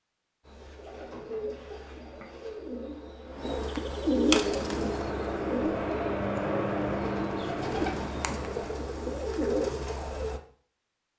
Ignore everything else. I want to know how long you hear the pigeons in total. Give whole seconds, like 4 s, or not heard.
10 s.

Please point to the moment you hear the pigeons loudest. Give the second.
4 s.